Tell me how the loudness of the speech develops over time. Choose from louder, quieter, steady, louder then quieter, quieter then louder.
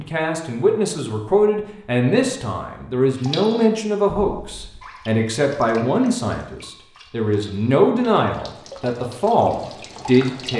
steady.